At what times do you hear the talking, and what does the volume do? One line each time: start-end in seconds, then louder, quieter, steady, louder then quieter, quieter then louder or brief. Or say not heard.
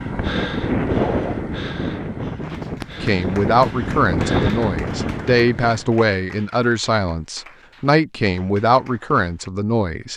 3.0-10.1 steady.